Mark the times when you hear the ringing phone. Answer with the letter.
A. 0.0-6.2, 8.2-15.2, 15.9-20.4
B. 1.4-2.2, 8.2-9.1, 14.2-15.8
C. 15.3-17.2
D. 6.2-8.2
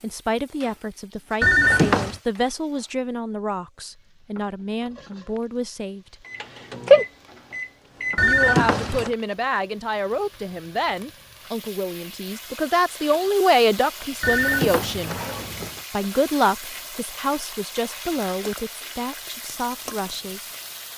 B.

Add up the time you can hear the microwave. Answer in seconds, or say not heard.
2 s.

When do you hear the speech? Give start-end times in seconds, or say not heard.
0.0-6.2, 8.2-15.2, 15.9-20.4.